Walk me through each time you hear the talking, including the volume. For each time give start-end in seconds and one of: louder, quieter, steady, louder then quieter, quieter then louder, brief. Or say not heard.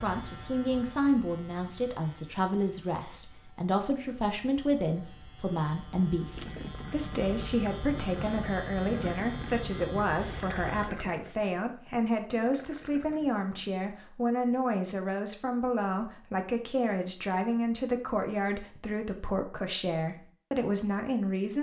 0.0-21.5 steady.